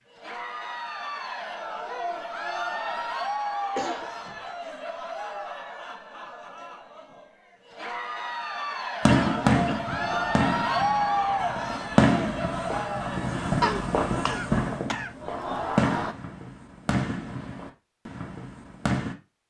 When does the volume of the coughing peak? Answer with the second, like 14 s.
14 s.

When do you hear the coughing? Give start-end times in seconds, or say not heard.
3.8-4.4, 9.1-9.8, 13.6-15.1.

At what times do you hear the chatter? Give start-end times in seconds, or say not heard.
0.0-16.1.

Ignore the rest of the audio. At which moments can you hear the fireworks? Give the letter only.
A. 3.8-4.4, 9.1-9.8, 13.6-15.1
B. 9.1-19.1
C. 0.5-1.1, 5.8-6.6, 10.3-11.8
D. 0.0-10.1
B.